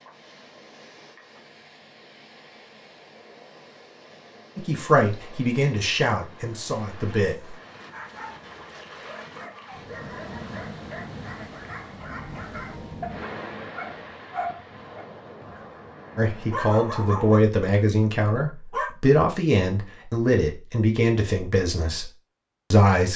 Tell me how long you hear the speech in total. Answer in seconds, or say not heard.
9 s.